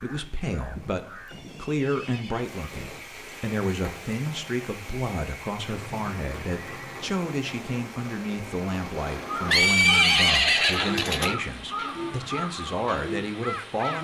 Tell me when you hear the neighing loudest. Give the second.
10 s.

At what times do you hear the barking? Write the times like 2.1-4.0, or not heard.
not heard.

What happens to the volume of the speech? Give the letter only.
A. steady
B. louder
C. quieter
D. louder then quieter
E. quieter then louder
A.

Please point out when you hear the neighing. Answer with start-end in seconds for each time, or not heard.
1.2-2.6, 5.8-7.0, 9.4-11.3.